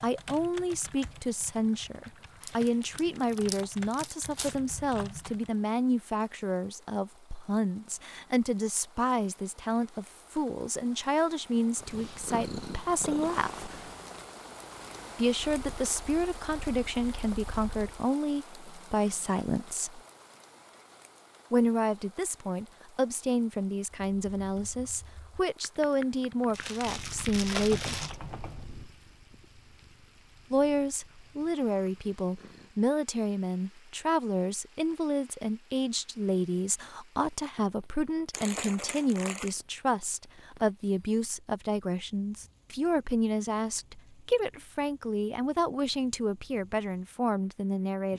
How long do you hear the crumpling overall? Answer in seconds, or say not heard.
5 s.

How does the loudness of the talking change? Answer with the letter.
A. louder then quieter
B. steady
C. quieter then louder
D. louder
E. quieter
B.